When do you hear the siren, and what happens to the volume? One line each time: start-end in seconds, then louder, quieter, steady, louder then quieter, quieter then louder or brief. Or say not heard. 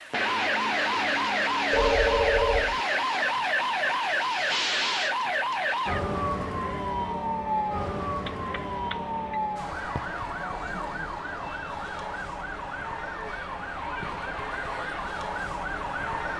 0.0-16.3 quieter.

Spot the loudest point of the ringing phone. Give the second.
2 s.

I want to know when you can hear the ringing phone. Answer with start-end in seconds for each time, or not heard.
1.7-2.8, 8.2-9.4.